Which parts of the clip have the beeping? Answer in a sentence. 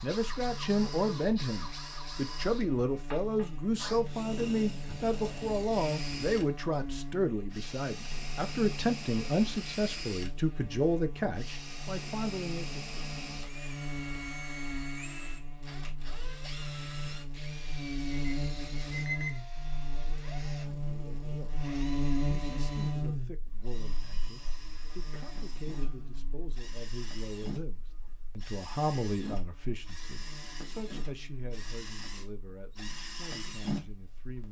You can hear the beeping from 18.1 to 19.4 s.